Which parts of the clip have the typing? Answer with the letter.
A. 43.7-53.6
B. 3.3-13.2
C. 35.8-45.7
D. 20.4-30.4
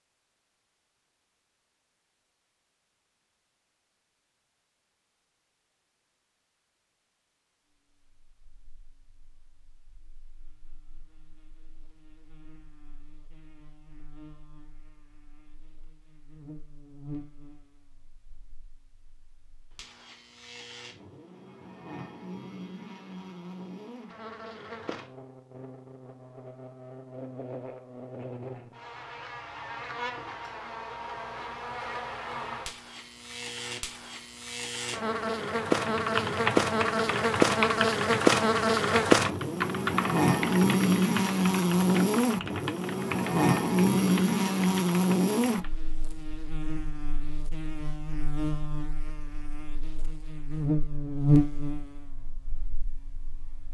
C.